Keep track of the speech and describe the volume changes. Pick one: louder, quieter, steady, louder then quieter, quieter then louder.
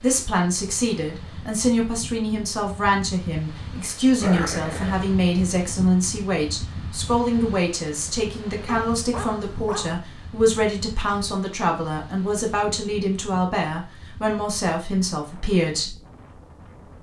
steady.